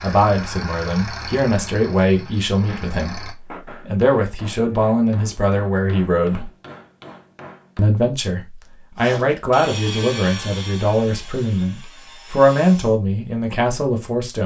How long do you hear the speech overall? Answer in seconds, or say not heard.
13 s.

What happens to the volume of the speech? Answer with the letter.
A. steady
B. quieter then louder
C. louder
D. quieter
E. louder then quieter
A.